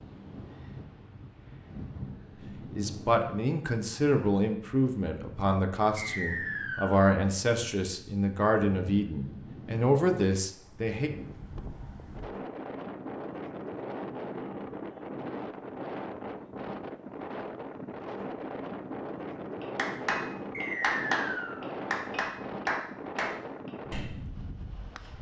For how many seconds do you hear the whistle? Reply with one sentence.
The whistle can be heard for 2 seconds in total.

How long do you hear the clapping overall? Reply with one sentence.
You can hear the clapping for 5 seconds altogether.